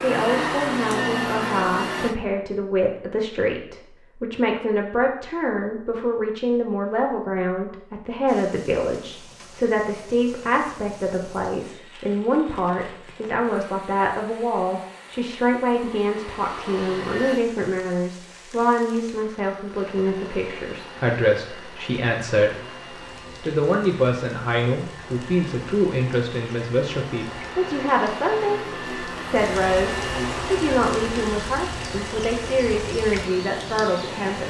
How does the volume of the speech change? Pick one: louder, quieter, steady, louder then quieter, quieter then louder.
steady.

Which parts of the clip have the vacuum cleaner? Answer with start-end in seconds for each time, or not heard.
0.0-2.1, 15.8-17.4, 19.7-34.4.